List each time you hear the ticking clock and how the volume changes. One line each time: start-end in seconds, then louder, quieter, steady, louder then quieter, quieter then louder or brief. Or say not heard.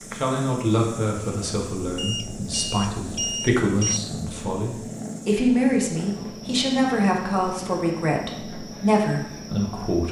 not heard.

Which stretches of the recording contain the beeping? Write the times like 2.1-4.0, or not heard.
1.9-4.0.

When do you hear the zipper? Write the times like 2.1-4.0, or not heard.
not heard.